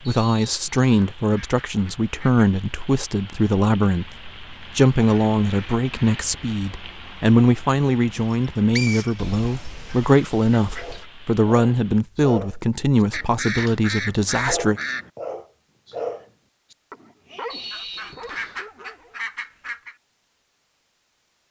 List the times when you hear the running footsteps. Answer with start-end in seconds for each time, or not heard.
not heard.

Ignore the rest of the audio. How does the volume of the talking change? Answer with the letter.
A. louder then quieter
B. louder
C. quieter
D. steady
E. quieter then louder
D.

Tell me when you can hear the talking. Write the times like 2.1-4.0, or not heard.
0.1-14.8.